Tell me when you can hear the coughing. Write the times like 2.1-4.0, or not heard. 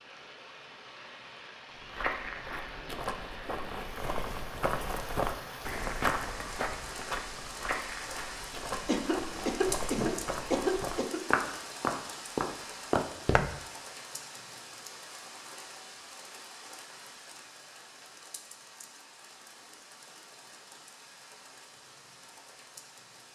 8.8-11.2.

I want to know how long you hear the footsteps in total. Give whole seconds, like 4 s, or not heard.
12 s.